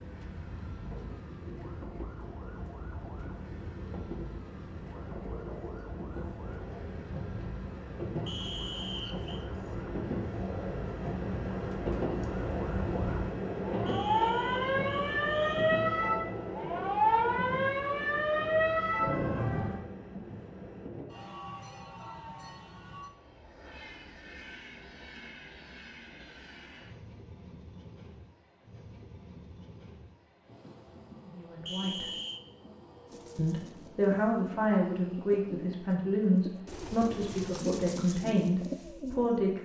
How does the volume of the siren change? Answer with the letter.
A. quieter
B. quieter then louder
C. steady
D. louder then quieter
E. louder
E.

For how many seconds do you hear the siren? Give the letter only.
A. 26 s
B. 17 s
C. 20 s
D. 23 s
C.